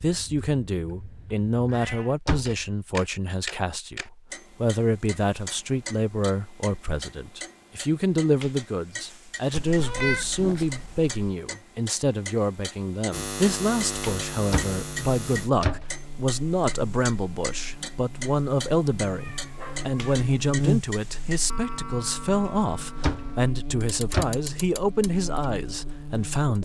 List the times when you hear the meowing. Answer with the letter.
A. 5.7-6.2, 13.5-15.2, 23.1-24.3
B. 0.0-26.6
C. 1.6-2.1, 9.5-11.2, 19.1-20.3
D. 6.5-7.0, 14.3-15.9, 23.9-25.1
C.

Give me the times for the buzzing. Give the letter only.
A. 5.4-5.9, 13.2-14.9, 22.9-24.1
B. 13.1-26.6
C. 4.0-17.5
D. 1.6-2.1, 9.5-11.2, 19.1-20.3
B.